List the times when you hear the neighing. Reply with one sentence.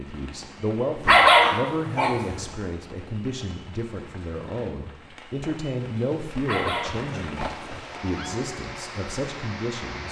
The neighing can be heard from 7.0 to 8.3 s.